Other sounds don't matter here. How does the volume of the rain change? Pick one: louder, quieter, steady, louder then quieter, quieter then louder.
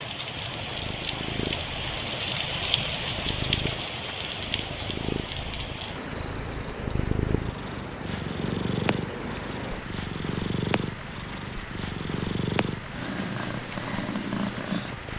quieter.